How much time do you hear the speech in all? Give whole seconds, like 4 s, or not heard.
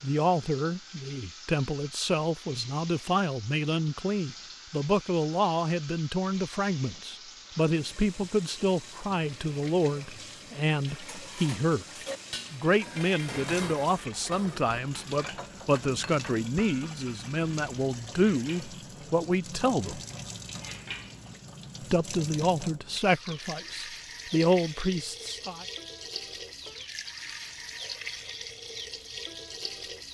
23 s.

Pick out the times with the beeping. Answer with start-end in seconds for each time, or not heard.
not heard.